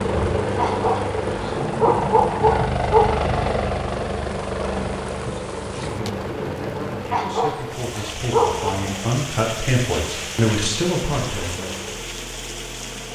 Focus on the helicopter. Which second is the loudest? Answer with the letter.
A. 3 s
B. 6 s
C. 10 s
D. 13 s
A.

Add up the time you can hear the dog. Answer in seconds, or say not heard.
4 s.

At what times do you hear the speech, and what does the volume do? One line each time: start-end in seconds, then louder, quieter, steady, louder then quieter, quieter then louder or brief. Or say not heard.
5.6-11.8 louder.